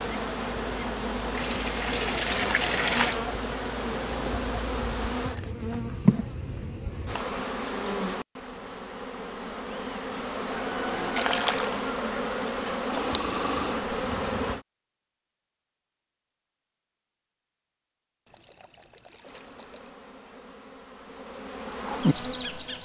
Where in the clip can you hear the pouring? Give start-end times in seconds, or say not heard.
1.3-3.2, 11.2-11.8, 18.2-19.9.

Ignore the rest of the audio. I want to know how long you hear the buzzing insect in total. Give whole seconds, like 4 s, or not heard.
18 s.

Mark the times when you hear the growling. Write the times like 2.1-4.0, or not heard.
12.8-13.8.